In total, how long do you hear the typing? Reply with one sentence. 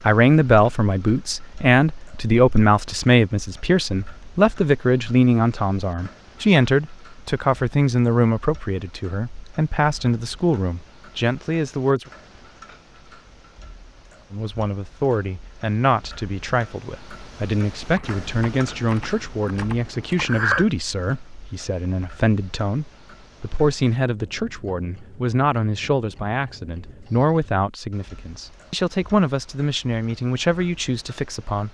You can hear the typing for 3 seconds altogether.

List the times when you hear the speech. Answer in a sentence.
The speech can be heard from 0.1 to 12.1 s and from 14.3 to 31.6 s.